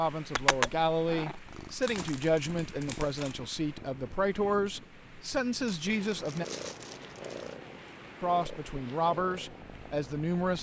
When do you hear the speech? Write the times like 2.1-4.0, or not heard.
0.0-6.5, 8.2-10.5.